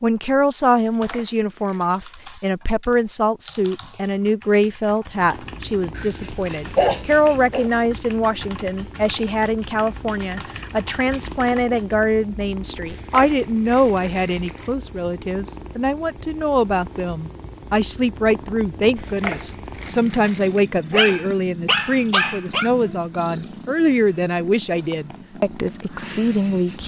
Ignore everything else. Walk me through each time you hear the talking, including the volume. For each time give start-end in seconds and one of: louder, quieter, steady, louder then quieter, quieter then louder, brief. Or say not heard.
0.0-26.8 steady.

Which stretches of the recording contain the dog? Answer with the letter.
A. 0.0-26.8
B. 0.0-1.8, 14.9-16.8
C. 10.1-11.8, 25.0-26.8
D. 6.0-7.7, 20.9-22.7
D.